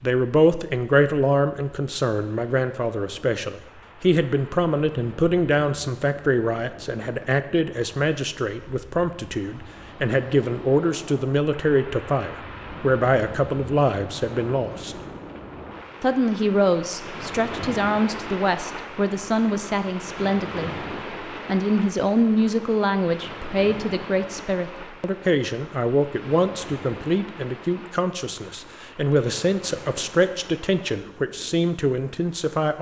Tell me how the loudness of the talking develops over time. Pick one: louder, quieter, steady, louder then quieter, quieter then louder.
steady.